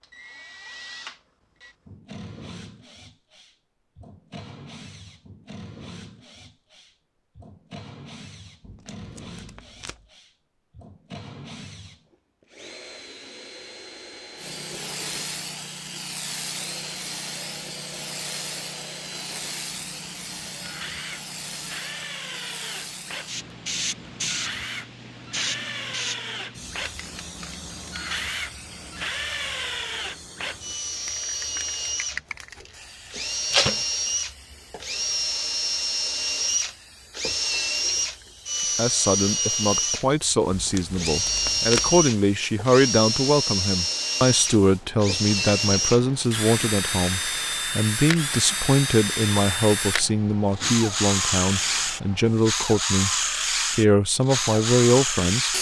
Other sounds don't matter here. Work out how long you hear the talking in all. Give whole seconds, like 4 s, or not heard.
16 s.